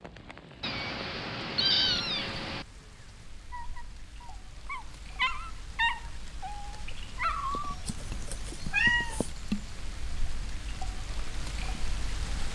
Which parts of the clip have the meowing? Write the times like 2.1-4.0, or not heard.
0.6-2.6, 7.8-9.3.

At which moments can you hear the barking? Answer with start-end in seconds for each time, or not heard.
3.5-7.8.